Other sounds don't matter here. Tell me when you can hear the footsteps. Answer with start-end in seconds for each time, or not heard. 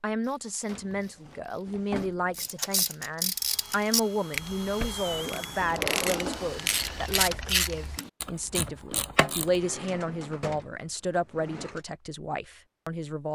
not heard.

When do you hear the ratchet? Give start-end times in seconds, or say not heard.
0.2-9.6.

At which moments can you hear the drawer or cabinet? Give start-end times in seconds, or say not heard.
0.7-2.5, 5.5-7.0, 9.4-11.8.